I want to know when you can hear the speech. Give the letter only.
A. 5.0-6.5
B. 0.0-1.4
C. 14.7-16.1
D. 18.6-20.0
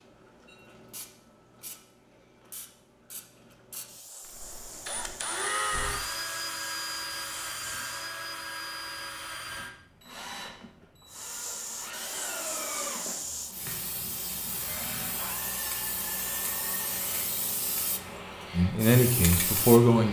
D.